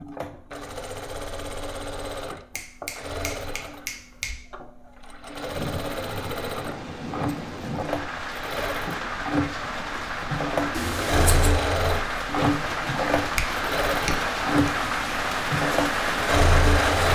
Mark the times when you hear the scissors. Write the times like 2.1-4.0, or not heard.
10.7-11.6.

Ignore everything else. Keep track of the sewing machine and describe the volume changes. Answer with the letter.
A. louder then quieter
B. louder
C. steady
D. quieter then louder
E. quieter
B.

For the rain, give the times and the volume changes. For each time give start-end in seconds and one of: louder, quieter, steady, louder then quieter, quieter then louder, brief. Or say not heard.
5.2-17.0 louder.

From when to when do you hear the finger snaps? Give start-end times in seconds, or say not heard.
2.5-4.3, 13.3-14.7.